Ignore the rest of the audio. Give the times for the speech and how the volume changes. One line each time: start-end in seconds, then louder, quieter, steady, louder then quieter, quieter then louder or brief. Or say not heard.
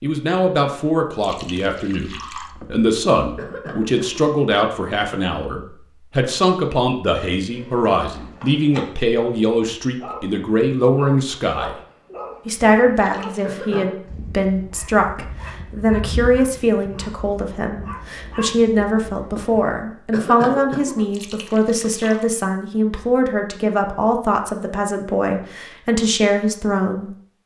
0.0-11.8 steady
12.4-27.1 steady.